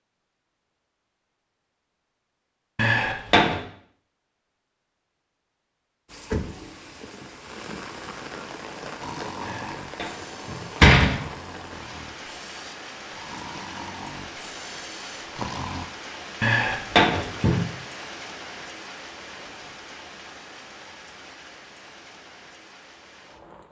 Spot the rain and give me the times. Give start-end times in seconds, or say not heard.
6.0-23.6.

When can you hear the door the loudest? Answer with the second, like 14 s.
11 s.